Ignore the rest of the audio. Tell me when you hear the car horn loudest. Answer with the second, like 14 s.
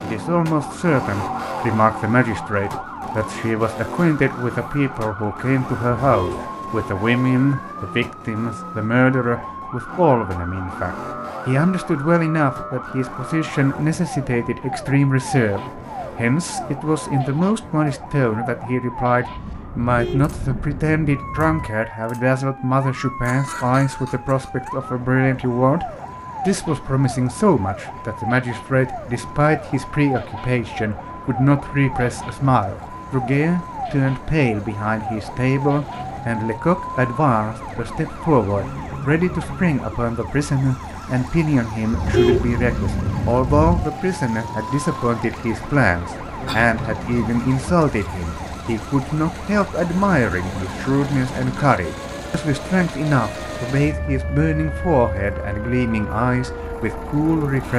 42 s.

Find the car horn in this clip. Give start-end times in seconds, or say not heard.
6.0-6.5, 19.8-21.7, 41.9-43.9.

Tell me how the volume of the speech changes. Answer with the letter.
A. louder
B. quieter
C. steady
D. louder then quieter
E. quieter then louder
C.